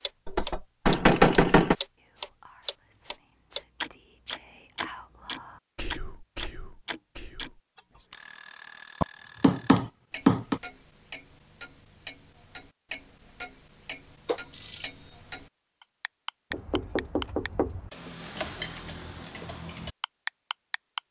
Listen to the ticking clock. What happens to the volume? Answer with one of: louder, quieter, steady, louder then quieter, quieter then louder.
quieter then louder.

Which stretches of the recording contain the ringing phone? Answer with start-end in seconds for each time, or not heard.
14.2-14.9.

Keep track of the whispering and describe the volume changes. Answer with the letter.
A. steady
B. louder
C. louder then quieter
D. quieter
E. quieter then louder
C.